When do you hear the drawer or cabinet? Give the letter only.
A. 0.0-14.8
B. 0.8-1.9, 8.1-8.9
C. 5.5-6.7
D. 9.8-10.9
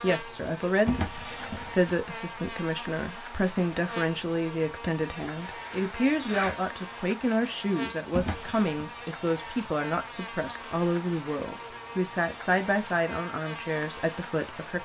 B.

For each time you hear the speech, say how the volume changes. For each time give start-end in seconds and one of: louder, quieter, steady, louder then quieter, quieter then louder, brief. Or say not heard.
0.0-14.8 steady.